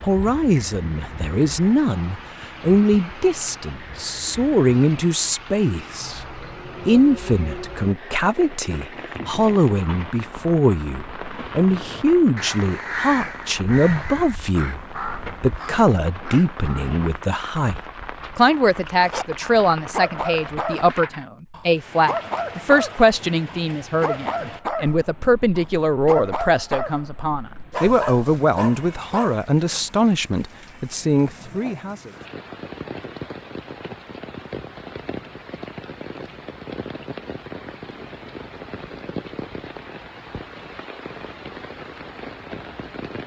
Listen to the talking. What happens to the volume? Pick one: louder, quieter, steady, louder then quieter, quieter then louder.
steady.